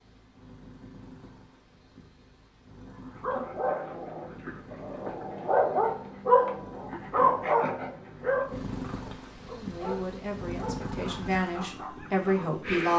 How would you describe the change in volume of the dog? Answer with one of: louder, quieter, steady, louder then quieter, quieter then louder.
louder then quieter.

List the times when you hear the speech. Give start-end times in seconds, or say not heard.
9.5-12.9.